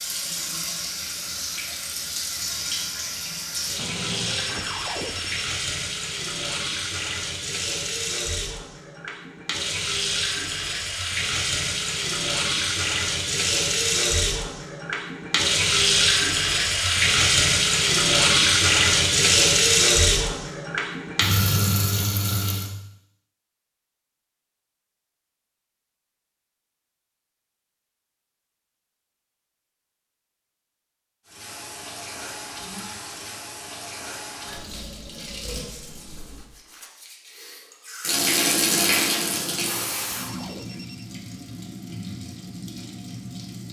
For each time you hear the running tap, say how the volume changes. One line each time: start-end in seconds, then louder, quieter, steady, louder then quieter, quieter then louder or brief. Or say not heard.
0.0-22.7 louder
31.2-43.6 louder then quieter.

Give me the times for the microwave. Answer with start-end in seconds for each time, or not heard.
not heard.